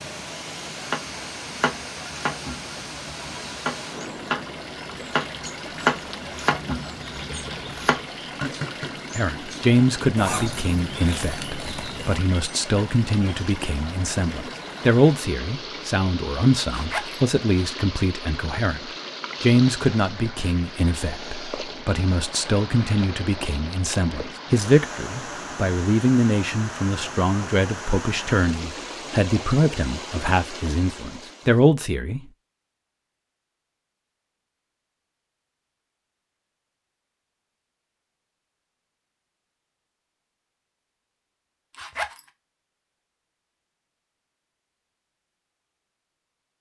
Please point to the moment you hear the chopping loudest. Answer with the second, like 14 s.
6 s.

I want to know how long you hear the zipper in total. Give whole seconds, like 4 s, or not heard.
3 s.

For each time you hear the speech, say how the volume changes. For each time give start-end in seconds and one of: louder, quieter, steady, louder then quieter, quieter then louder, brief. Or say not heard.
9.2-32.3 steady.